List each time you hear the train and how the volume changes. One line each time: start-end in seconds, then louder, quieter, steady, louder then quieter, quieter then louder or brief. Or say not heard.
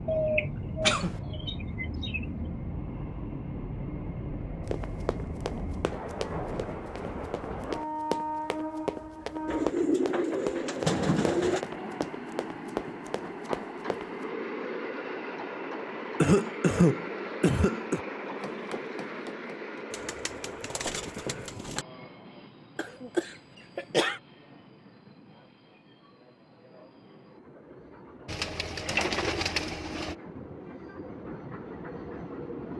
0.0-32.7 quieter.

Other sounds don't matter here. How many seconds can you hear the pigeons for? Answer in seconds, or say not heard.
8 s.